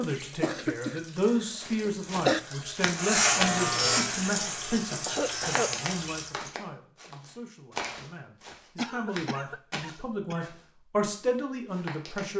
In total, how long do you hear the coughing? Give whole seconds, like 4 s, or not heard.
4 s.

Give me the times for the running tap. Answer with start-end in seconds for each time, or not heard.
0.0-6.5.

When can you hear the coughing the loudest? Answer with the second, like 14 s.
2 s.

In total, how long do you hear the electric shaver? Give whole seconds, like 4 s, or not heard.
3 s.